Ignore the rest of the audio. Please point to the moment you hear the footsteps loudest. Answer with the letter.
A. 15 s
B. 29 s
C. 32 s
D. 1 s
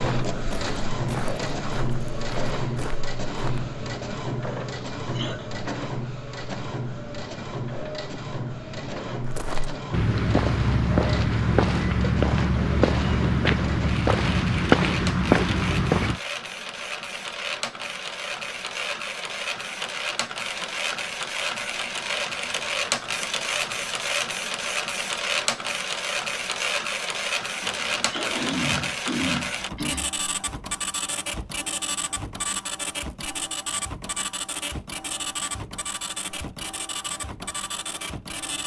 A.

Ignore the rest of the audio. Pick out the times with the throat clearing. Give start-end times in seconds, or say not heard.
4.7-5.5, 27.6-30.1.